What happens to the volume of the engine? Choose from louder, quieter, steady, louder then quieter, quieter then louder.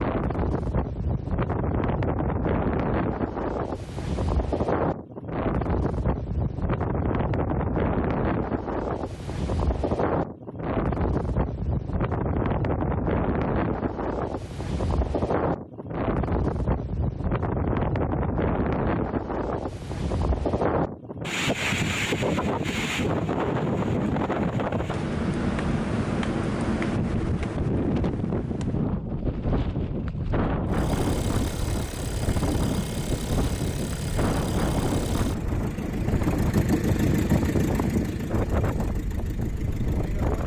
louder then quieter.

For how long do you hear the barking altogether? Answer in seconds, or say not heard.
not heard.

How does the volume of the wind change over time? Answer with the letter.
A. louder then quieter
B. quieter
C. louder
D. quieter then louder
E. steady
E.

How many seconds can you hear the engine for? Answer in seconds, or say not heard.
10 s.